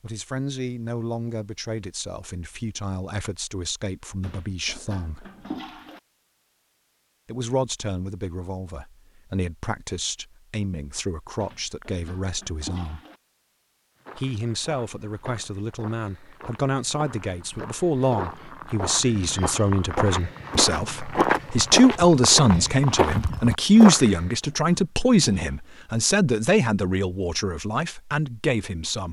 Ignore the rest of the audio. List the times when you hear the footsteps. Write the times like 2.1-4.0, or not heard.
14.1-24.2.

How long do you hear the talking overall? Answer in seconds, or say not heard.
26 s.